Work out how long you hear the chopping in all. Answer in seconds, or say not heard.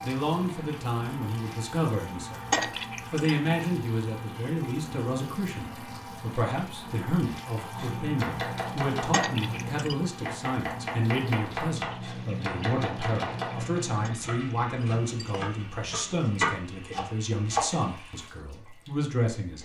10 s.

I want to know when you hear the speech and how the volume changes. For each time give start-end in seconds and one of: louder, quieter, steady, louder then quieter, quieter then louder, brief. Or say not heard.
0.0-2.5 brief
3.1-19.6 steady.